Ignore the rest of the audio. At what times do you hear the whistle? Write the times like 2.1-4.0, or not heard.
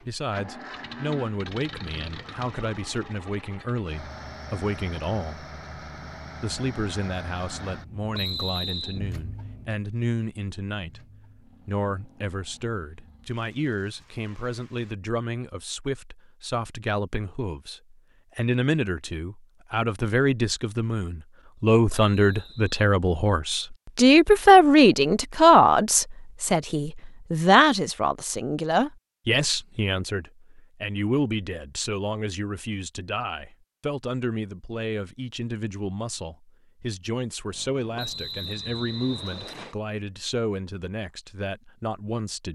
8.1-9.0, 21.9-22.8, 38.0-39.8.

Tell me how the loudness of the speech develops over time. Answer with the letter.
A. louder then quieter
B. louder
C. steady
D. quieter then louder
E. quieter
A.